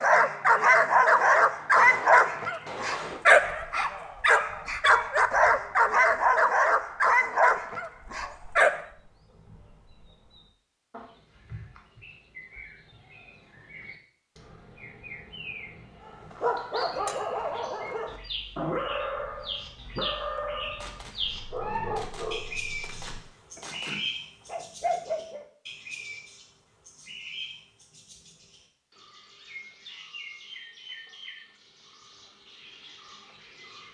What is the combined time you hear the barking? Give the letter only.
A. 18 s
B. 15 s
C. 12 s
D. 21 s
A.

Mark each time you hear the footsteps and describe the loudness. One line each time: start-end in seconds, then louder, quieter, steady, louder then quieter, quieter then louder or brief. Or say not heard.
not heard.